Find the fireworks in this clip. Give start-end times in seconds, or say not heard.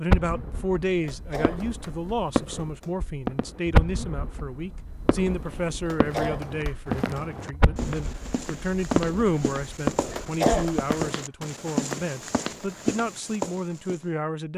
0.1-11.1.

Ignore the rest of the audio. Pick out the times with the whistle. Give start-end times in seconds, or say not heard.
not heard.